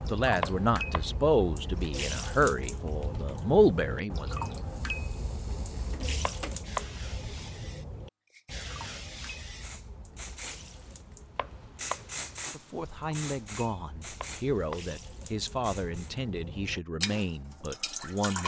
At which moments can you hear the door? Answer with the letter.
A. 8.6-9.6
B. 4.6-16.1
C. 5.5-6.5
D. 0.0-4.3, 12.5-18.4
C.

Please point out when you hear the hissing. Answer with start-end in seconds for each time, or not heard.
4.6-16.1.